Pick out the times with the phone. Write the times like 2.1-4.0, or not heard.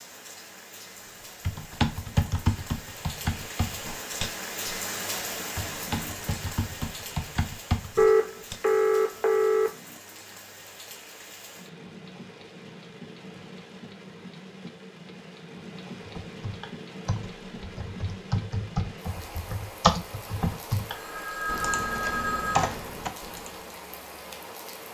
8.0-9.7, 20.9-22.7.